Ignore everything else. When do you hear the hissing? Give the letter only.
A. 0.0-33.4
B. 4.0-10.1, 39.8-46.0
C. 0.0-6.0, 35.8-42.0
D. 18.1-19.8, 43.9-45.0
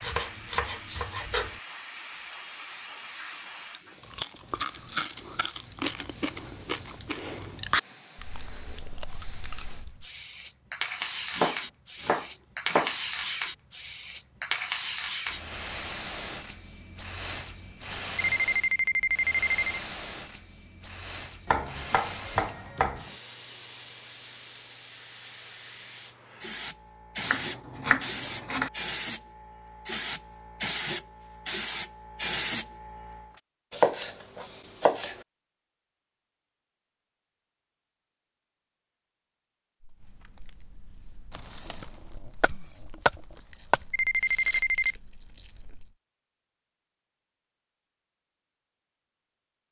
A.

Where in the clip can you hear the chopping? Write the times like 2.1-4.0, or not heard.
0.0-1.6, 11.0-12.9, 21.4-23.1, 27.2-28.7, 33.7-35.2, 41.4-43.8.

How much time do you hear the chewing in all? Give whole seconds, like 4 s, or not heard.
12 s.